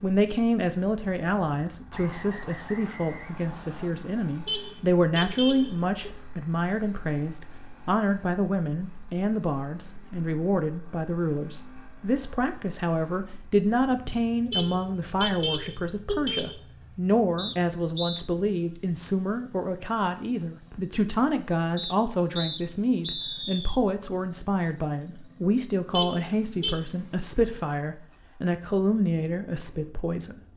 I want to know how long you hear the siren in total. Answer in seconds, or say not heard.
not heard.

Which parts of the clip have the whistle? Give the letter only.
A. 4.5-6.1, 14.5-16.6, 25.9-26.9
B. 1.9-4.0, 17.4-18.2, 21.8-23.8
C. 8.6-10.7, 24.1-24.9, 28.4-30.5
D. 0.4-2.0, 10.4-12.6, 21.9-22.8
B.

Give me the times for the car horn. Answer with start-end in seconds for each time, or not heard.
4.5-6.1, 14.5-16.6, 25.9-26.9.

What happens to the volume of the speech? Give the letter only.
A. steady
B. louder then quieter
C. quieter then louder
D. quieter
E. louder
A.